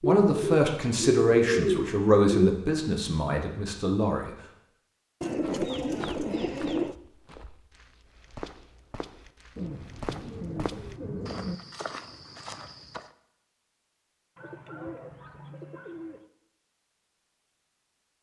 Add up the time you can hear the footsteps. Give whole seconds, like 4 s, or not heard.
8 s.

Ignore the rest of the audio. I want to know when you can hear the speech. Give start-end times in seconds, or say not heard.
0.0-4.3.